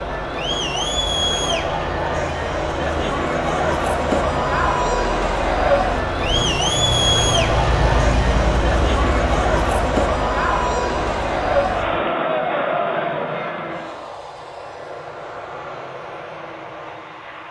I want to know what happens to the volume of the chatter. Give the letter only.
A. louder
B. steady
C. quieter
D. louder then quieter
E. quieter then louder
B.